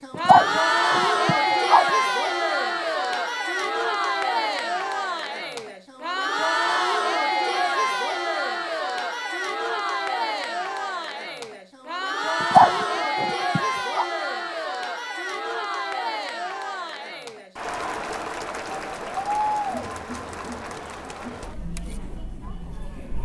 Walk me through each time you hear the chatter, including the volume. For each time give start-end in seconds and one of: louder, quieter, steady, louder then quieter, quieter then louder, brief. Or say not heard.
0.0-23.2 quieter.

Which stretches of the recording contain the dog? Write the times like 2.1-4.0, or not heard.
0.1-1.9, 12.4-14.1.